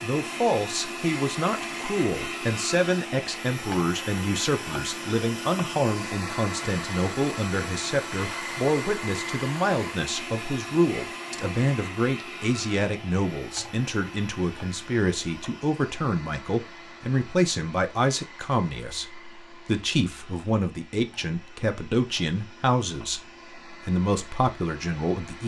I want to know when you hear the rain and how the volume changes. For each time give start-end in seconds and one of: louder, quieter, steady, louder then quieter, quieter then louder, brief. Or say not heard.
not heard.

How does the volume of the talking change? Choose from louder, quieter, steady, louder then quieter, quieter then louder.
steady.